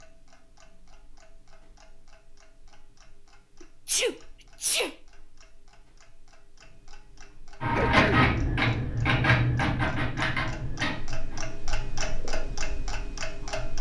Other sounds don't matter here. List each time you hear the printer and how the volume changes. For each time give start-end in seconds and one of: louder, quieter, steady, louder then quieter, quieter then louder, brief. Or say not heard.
7.6-12.2 quieter.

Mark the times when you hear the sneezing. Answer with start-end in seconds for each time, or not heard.
3.6-5.0, 7.8-8.2.